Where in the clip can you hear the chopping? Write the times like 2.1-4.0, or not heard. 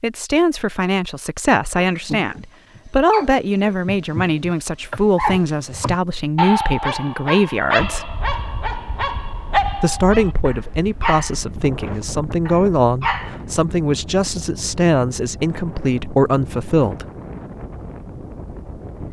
not heard.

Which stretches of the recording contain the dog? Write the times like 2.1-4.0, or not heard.
1.8-13.4.